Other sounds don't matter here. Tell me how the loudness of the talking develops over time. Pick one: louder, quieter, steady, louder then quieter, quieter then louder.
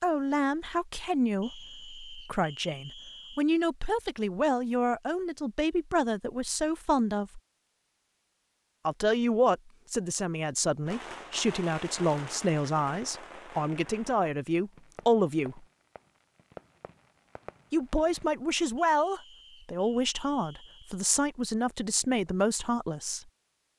steady.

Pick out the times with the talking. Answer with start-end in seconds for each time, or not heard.
0.0-7.4, 8.8-15.7, 17.7-23.2.